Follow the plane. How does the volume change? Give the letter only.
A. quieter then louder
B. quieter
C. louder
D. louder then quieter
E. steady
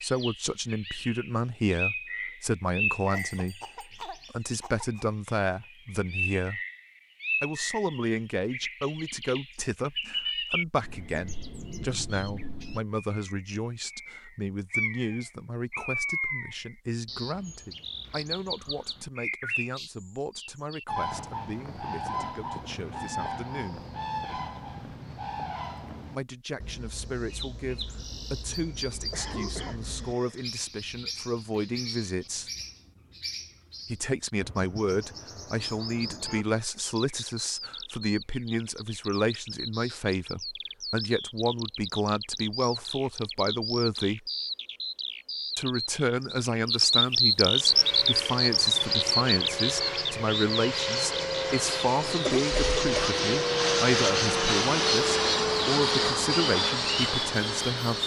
C.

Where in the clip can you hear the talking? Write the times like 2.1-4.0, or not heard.
0.0-6.6, 7.4-23.9, 26.1-32.5, 33.9-44.2, 45.5-58.0.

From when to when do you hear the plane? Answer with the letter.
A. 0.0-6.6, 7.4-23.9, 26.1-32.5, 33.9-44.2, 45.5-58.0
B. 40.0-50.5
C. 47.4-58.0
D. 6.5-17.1
C.